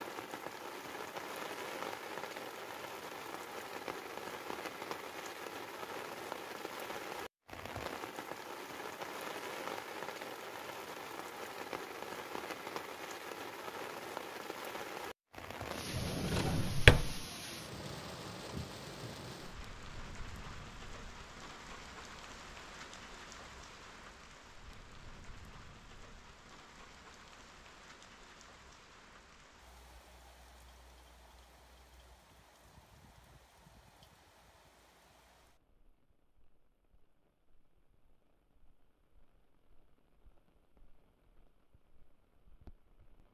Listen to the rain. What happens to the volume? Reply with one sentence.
The volume of the rain goes down.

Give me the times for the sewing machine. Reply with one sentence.
The sewing machine can't be heard in this clip.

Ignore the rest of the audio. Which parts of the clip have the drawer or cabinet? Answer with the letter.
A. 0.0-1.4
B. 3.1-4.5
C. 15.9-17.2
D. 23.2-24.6
C.